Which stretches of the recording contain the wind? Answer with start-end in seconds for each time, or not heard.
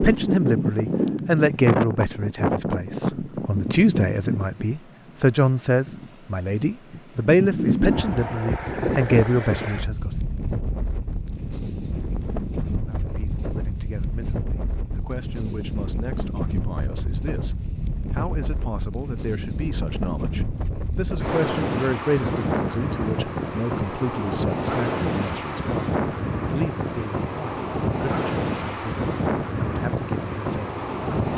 0.0-31.3.